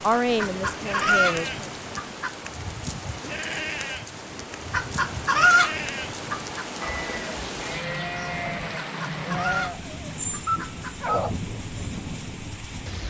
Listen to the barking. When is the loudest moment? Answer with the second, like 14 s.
11 s.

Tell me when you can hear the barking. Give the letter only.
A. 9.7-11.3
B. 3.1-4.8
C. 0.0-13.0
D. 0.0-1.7
A.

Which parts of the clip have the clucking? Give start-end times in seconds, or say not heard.
0.3-2.4, 4.7-6.7, 8.8-10.9.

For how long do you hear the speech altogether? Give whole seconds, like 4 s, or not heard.
2 s.